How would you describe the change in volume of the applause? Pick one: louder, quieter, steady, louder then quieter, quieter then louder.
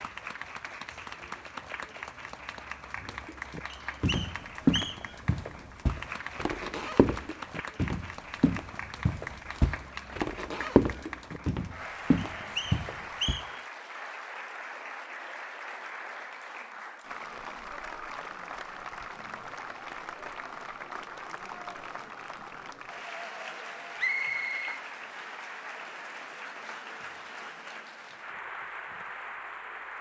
steady.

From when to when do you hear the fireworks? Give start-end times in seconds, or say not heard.
not heard.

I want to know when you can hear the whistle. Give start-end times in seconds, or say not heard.
3.7-5.2, 12.2-13.6, 23.9-25.3.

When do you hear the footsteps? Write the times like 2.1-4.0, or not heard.
3.0-13.4.